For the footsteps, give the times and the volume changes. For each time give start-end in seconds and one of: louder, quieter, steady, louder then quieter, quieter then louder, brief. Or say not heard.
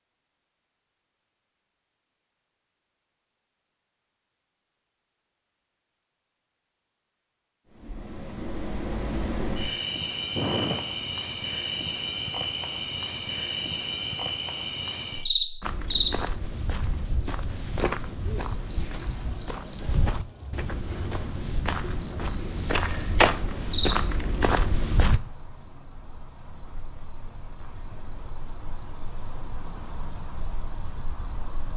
15.6-25.2 louder.